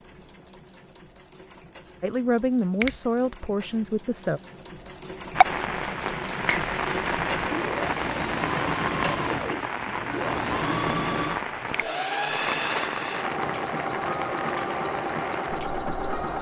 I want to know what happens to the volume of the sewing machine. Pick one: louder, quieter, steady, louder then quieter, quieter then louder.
louder.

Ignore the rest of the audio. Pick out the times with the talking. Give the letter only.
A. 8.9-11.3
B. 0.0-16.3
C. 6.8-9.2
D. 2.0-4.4
D.